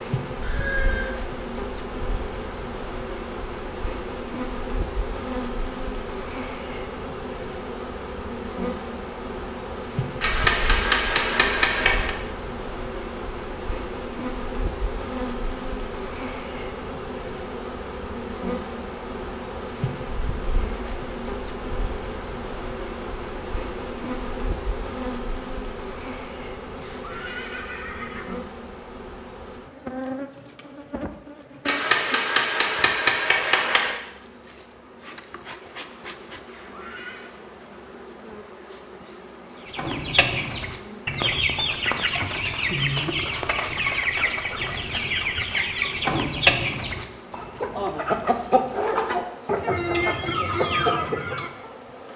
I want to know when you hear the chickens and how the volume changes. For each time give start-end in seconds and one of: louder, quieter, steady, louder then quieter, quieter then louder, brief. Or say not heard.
39.6-51.7 steady.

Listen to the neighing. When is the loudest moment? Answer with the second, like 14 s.
1 s.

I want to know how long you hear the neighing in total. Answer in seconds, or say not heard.
3 s.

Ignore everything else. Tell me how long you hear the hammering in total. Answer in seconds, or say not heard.
4 s.